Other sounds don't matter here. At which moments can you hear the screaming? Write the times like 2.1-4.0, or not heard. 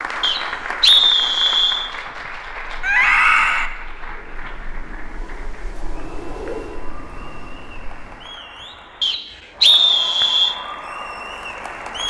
2.8-3.7.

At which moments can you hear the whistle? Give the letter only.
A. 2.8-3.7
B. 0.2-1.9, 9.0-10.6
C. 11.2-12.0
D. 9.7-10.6
B.